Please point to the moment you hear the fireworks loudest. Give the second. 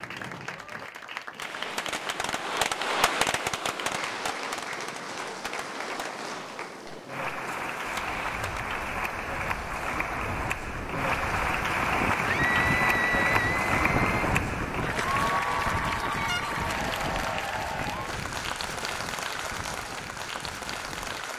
3 s.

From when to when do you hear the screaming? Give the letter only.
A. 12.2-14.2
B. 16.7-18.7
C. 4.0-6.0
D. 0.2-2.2
A.